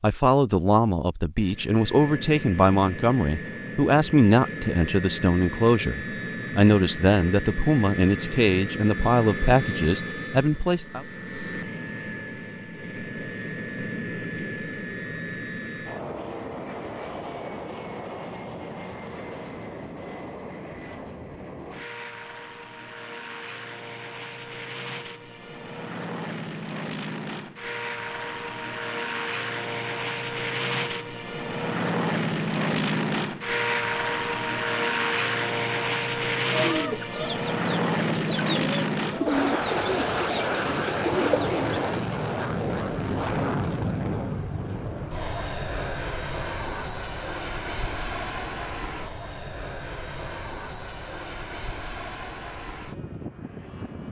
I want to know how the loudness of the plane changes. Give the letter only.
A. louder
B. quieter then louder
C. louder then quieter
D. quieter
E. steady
C.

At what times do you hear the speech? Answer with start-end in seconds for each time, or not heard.
0.0-11.1.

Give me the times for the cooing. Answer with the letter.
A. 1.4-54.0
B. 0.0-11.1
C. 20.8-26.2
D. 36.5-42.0
D.